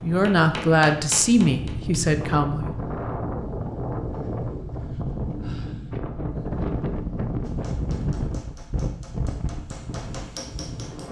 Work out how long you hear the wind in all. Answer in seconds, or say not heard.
11 s.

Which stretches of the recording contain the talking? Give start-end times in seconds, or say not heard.
0.0-2.9.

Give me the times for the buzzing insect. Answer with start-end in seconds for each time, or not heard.
not heard.